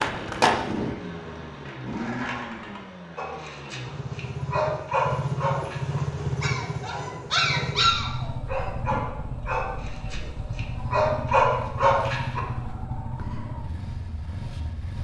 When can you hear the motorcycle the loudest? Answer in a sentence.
The volume of the motorcycle peaks at 6 seconds.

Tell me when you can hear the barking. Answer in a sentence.
The barking can be heard from 3.1 to 12.4 s.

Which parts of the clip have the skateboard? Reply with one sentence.
The skateboard can be heard from 0.0 to 2.8 s.